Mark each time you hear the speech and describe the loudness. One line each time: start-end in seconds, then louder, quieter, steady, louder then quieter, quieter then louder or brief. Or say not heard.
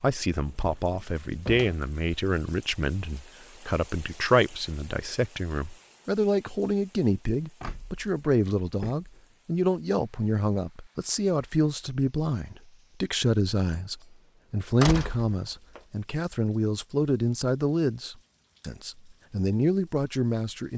0.0-20.7 steady.